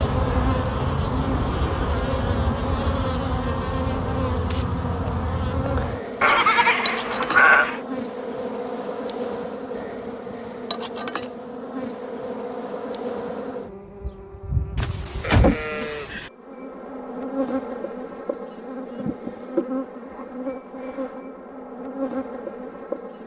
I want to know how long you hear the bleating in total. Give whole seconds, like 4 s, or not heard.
3 s.